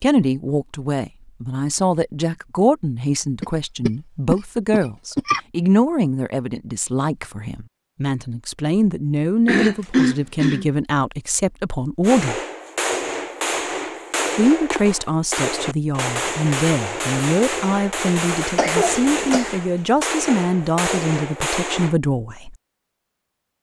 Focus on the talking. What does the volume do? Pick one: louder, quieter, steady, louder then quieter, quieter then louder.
steady.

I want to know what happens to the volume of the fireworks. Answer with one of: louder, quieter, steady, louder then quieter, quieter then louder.
steady.